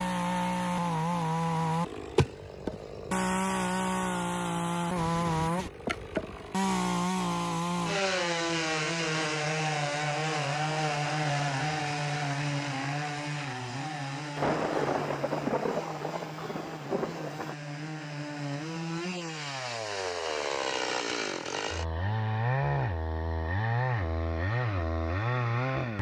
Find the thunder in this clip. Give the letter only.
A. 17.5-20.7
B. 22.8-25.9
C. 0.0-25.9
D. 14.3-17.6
D.